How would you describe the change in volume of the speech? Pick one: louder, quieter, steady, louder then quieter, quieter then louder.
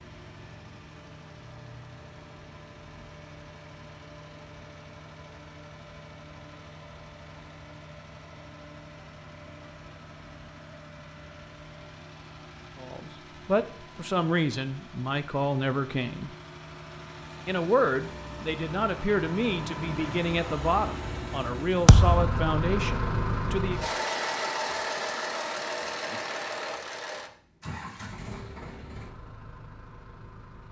steady.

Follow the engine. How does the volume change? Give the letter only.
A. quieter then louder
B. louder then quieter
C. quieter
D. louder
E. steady
D.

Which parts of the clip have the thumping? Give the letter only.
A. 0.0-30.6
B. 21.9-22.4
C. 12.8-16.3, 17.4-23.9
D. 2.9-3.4
B.